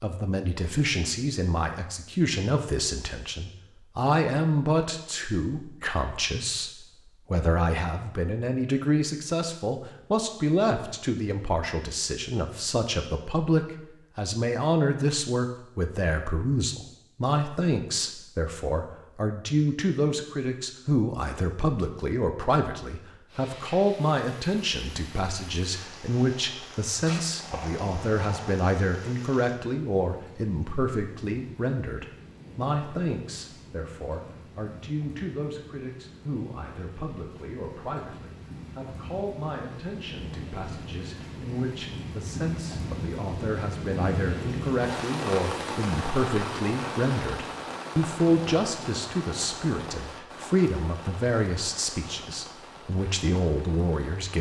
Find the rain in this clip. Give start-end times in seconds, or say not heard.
23.2-54.3.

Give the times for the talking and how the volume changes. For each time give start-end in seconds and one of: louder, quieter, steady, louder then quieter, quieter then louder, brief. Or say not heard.
0.0-54.3 quieter then louder.